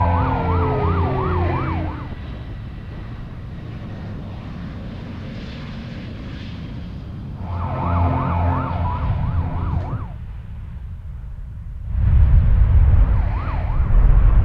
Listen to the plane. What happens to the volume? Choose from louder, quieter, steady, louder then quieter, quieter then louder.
louder.